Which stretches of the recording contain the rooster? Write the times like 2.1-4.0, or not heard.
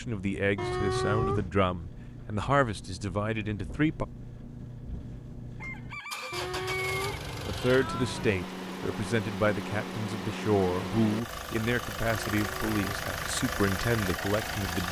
5.6-7.2.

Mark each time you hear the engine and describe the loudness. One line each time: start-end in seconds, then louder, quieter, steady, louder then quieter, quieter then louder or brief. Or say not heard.
0.0-14.8 louder.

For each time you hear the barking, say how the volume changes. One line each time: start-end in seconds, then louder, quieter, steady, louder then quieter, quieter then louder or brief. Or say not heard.
not heard.